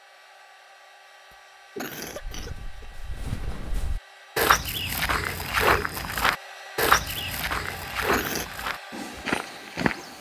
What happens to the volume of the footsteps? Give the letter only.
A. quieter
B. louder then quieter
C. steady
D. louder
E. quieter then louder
B.